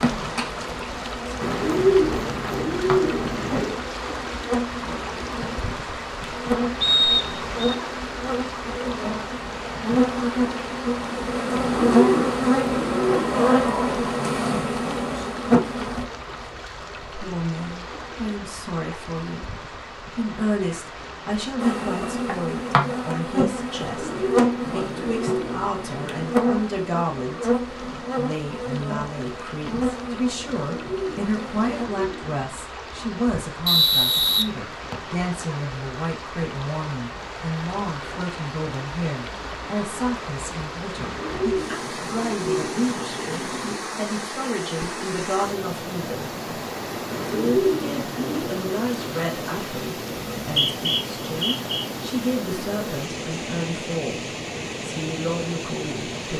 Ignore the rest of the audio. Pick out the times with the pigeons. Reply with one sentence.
The pigeons can be heard from 1.4 to 3.8 s, from 11.5 to 13.6 s, from 23.9 to 26.3 s, from 30.4 to 32.5 s, from 41.0 to 43.8 s and from 47.1 to 48.7 s.